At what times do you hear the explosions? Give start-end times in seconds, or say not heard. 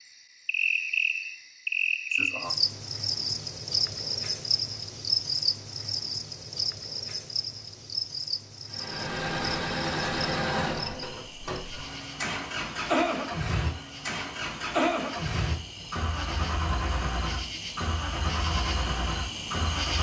not heard.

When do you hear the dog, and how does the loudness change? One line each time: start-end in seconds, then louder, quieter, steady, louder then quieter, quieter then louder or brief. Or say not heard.
not heard.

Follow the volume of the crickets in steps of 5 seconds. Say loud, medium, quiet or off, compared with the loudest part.
loud, loud, quiet, medium.